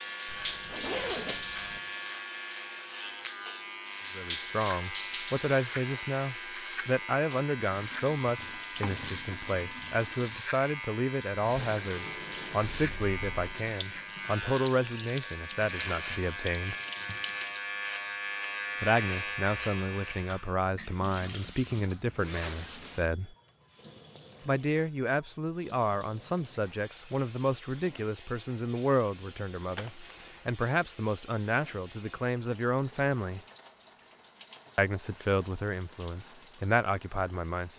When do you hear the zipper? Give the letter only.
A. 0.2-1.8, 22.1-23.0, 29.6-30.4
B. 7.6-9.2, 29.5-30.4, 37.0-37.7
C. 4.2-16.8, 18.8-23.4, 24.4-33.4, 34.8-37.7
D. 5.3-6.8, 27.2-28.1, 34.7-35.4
A.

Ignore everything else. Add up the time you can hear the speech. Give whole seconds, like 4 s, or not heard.
29 s.